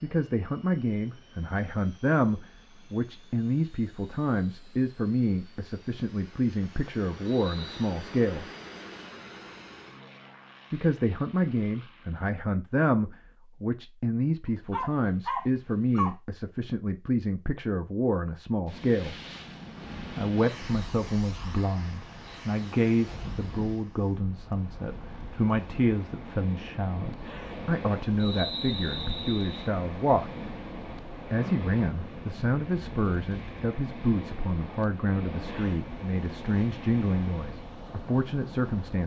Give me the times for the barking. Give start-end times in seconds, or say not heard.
14.7-16.1.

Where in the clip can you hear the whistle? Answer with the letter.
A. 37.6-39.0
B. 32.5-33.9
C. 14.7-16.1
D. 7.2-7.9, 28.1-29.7
D.